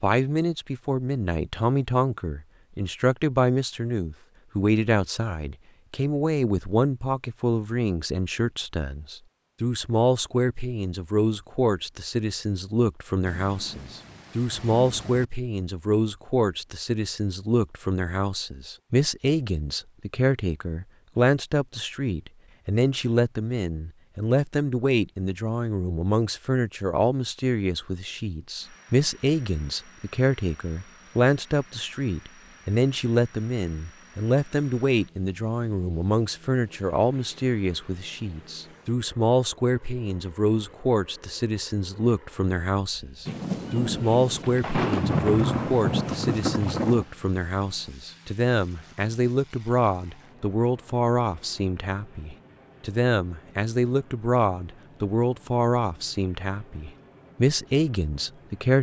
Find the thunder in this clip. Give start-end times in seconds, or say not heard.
13.2-15.2, 43.2-47.0.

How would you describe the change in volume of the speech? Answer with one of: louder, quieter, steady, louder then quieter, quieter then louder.
steady.